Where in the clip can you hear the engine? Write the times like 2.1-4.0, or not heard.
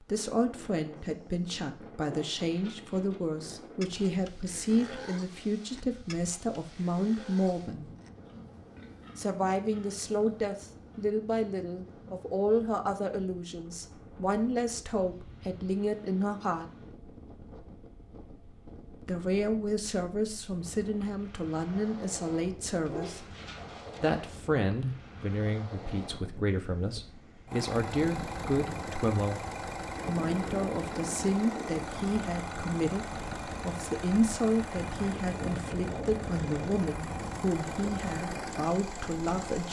27.4-39.6.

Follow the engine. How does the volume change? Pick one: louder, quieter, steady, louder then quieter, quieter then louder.
steady.